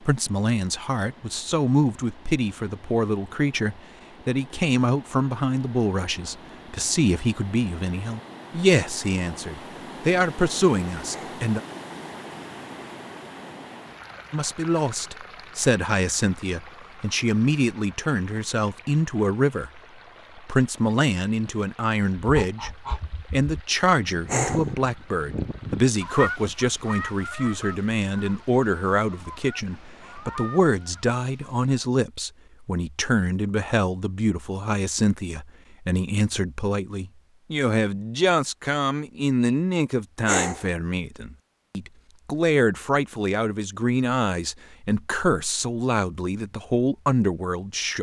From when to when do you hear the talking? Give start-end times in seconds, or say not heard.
0.1-11.6, 14.3-22.7, 23.3-47.9.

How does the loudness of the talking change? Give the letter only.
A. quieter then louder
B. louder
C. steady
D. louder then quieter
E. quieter
C.